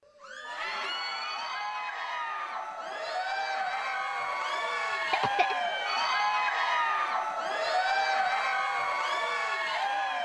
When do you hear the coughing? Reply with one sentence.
The coughing can be heard from 4.9 to 5.5 s.